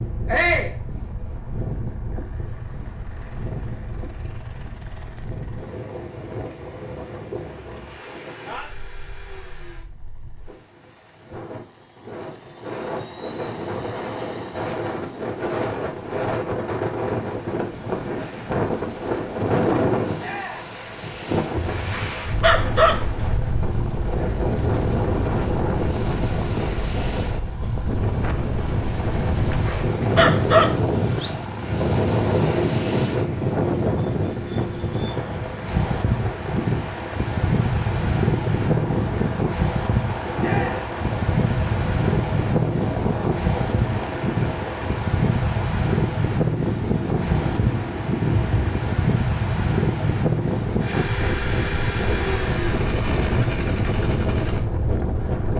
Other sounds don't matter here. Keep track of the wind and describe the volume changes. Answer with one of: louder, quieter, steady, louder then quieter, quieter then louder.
louder.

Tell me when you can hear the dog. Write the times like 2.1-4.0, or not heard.
21.6-23.0, 29.3-31.3.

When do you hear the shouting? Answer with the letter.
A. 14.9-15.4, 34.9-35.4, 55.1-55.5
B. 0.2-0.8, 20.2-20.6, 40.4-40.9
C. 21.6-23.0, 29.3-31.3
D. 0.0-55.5
B.